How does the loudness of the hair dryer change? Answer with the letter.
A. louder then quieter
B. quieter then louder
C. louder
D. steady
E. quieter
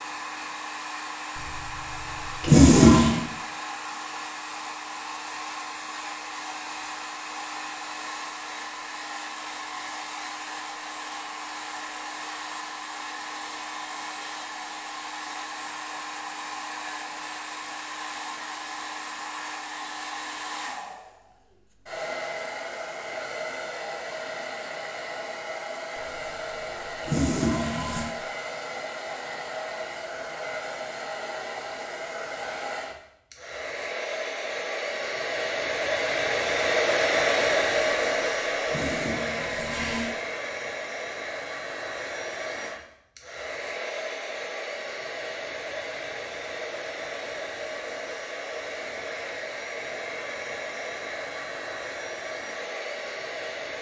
A.